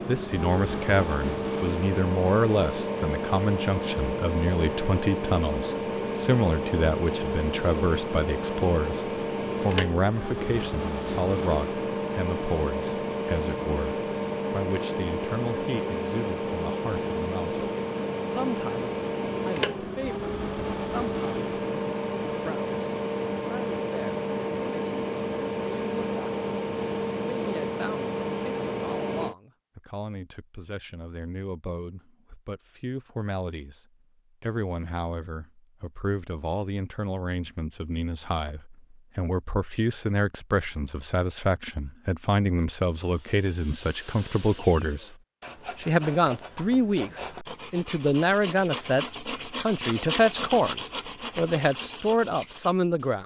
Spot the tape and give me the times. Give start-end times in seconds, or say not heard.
not heard.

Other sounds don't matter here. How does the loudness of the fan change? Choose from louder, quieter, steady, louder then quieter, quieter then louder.
steady.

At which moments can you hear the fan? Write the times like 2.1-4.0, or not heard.
0.0-29.4.